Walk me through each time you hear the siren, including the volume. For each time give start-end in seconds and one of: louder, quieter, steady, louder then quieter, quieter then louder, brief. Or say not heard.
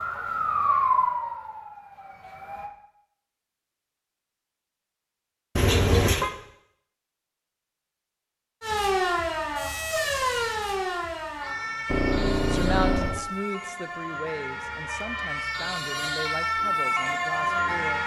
0.0-2.7 brief
8.6-18.0 quieter then louder.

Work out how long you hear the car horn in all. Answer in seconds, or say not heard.
2 s.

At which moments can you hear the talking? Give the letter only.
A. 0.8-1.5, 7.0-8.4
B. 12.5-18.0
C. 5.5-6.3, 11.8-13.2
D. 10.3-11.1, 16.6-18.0
B.